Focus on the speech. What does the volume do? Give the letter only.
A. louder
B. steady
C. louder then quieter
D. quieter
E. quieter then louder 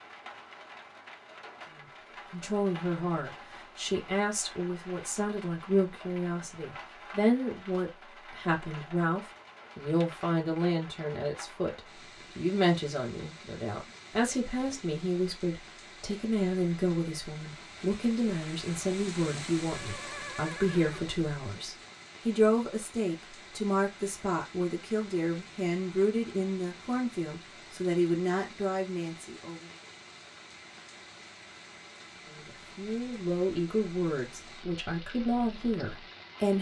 B.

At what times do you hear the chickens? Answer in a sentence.
The chickens can't be heard in this clip.